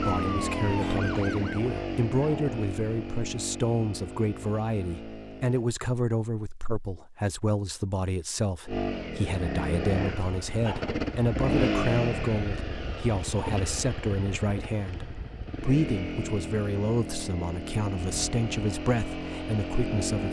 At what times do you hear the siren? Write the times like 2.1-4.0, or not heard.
0.1-1.7.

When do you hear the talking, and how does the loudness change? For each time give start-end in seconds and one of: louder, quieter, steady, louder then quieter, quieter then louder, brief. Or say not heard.
0.0-20.2 steady.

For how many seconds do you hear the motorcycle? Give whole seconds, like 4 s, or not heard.
17 s.